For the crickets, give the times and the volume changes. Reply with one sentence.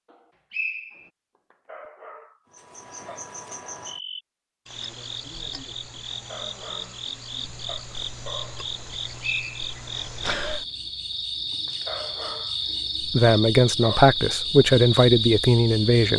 You can hear the crickets from 2.5 to 16.1 s, getting louder.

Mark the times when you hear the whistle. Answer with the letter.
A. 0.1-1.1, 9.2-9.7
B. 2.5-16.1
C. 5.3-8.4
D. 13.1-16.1
A.